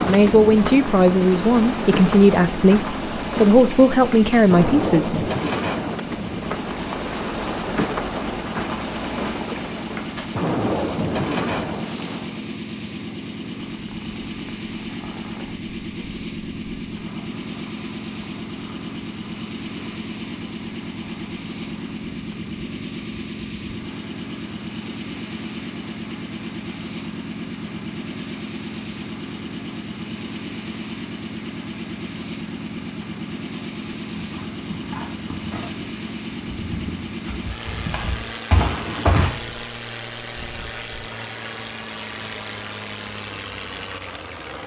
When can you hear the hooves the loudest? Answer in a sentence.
The volume of the hooves peaks at 39 seconds.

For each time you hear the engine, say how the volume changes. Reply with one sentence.
You can hear the engine from 0.2 to 44.6 s, at a steady volume.